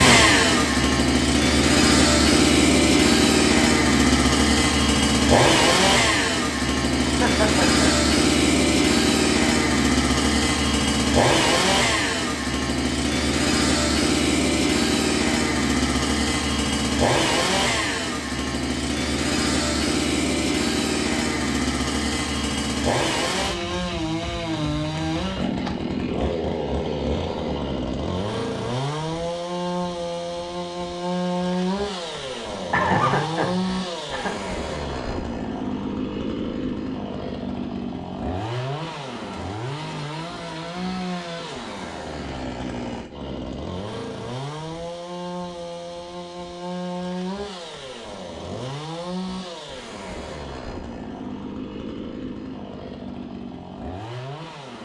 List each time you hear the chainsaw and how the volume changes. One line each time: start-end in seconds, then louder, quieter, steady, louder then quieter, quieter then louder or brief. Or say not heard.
0.0-54.8 quieter.